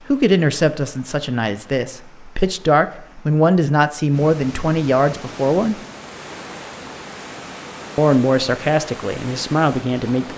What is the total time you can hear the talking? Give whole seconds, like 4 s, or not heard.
8 s.